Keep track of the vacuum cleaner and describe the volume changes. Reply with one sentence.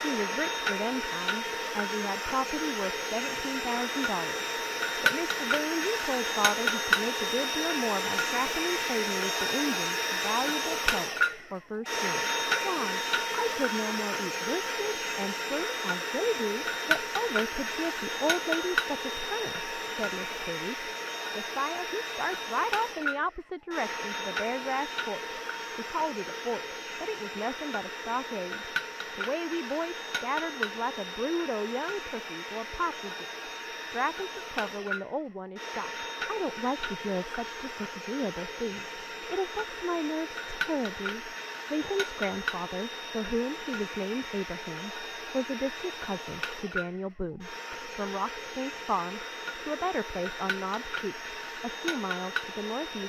The loudness of the vacuum cleaner goes down.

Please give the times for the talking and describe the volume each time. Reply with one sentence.
You can hear the talking from 0.0 to 53.0 s, at a steady volume.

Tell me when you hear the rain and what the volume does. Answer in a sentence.
The rain can't be heard in this clip.